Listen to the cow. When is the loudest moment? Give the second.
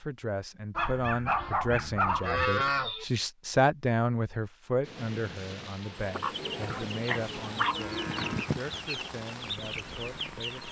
3 s.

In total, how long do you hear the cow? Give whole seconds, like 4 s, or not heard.
3 s.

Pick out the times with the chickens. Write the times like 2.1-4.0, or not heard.
6.0-10.6.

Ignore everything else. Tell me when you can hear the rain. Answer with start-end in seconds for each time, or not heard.
4.8-10.6.